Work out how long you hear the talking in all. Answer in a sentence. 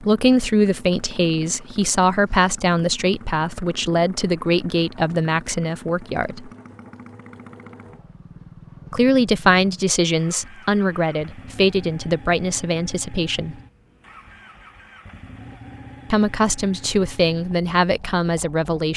The talking can be heard for 14 seconds in total.